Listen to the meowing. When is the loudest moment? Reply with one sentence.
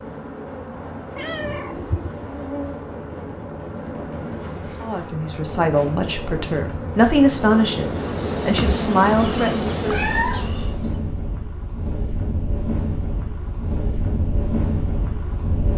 The loudest moment of the meowing is at 10 seconds.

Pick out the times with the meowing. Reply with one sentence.
The meowing can be heard from 1.1 to 2.1 s and from 9.9 to 10.5 s.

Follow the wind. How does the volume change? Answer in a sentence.
The volume of the wind goes up.